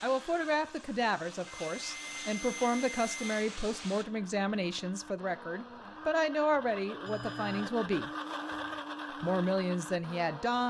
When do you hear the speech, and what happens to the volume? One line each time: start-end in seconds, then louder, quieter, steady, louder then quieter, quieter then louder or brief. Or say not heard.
0.0-8.1 steady
9.2-10.6 brief.